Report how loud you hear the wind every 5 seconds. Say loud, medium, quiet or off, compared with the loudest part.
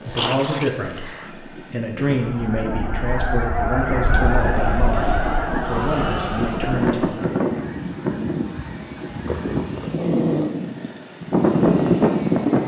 quiet, medium, loud.